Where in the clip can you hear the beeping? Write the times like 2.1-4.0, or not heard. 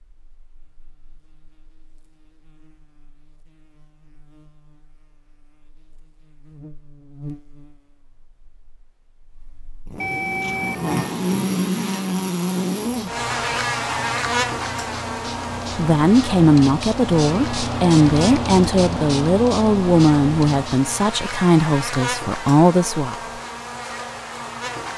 10.0-10.8.